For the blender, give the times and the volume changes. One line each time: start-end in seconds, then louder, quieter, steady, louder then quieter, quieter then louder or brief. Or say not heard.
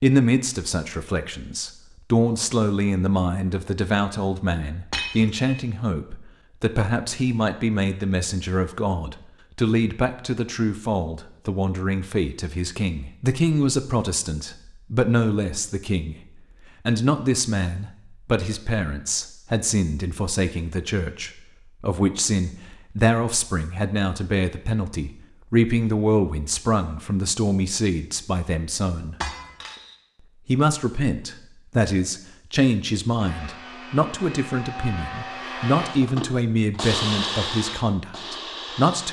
33.1-39.0 louder then quieter.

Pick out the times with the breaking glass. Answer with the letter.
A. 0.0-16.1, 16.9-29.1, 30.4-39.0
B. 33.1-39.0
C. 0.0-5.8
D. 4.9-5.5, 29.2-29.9
D.